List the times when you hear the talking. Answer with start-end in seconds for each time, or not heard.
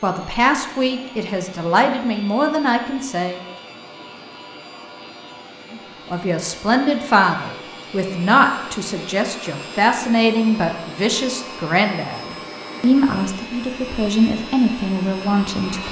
0.0-3.5, 5.7-15.8.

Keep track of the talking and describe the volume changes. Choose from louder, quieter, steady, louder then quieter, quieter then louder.
steady.